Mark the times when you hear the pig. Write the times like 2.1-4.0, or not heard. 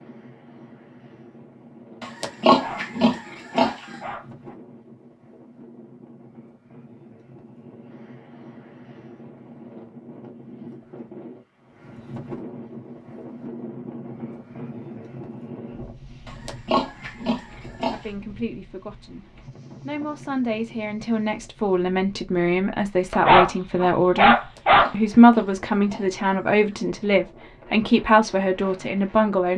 2.0-4.0, 16.2-18.1, 24.4-26.9.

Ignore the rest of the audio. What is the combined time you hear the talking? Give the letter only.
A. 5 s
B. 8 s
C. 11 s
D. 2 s
C.